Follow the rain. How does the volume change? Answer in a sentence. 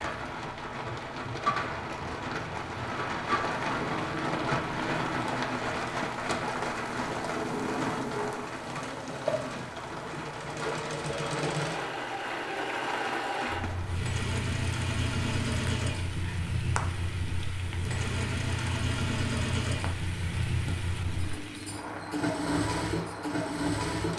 The loudness of the rain goes down.